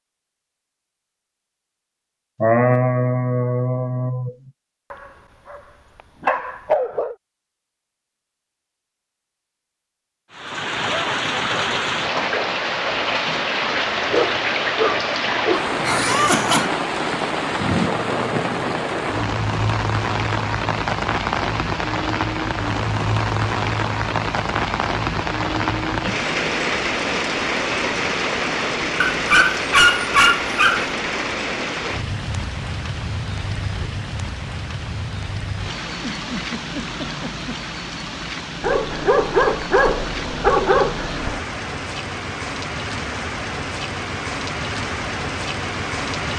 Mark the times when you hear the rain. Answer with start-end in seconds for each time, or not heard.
10.3-46.3.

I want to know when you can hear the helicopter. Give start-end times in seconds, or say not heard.
not heard.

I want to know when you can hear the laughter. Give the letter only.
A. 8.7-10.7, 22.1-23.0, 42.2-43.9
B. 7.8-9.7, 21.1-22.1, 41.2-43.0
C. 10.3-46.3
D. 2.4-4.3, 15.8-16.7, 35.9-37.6
D.